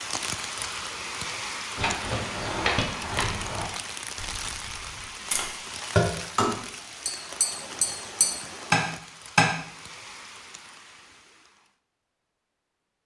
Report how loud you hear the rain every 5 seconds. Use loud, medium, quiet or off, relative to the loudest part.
loud, medium, quiet.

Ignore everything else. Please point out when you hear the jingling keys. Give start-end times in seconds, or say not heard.
1.8-3.6.